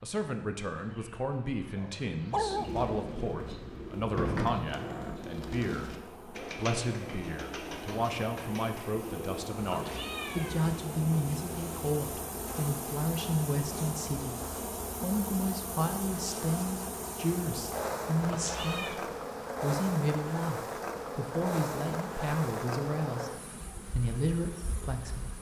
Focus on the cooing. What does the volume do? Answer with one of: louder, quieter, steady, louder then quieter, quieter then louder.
quieter.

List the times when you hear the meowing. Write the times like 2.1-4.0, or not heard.
9.6-10.8, 18.2-19.0.